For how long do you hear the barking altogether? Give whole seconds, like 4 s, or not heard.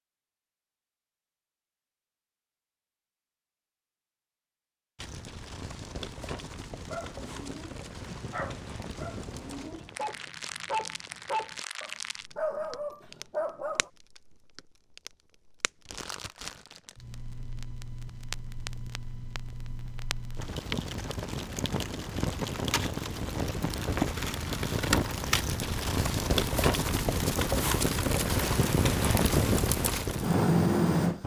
7 s.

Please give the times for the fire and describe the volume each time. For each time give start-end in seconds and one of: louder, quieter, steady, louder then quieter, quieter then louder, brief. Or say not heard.
5.0-31.2 louder.